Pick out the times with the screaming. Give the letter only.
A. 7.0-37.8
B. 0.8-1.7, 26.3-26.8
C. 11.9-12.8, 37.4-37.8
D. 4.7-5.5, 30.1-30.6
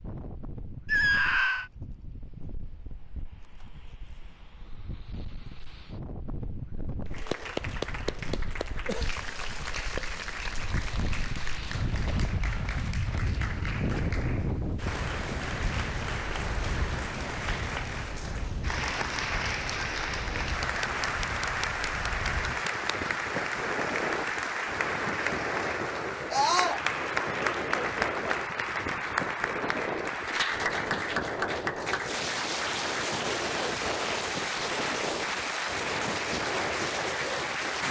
B.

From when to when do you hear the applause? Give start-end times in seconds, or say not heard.
7.0-37.8.